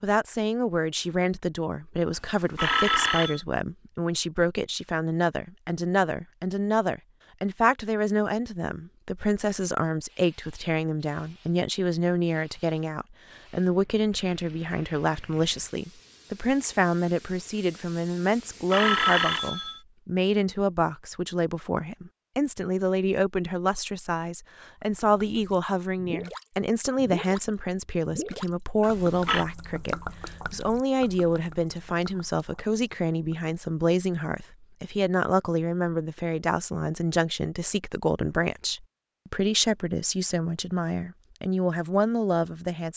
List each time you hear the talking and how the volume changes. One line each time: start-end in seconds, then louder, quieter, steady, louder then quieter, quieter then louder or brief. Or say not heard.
0.0-42.9 steady.